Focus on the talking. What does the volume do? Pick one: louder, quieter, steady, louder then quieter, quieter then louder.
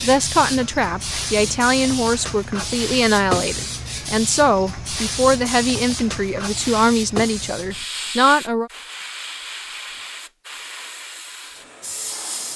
steady.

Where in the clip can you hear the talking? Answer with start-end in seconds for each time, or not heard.
0.0-8.7.